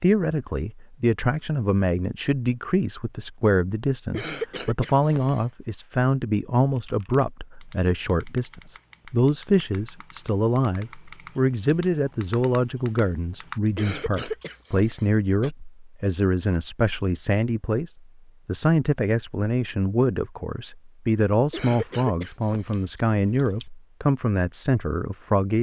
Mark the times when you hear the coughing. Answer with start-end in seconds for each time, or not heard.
4.1-5.4, 13.8-15.5, 21.5-22.8.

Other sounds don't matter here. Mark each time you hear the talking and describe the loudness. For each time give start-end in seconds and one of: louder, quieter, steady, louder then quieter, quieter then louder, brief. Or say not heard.
0.0-25.5 steady.